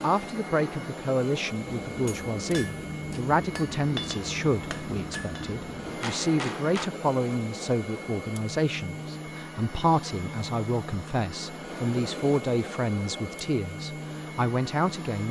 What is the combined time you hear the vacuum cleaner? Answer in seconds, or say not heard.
15 s.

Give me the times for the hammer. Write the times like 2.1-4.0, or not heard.
1.6-6.9.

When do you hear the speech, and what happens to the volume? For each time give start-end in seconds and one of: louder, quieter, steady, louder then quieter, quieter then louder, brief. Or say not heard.
0.0-15.2 steady.